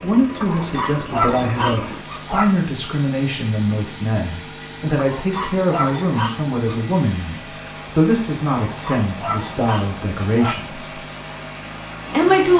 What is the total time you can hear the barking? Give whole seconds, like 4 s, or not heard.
6 s.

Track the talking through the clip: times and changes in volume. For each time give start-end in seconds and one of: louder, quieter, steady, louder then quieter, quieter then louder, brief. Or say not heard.
0.0-11.0 steady
12.1-12.5 brief.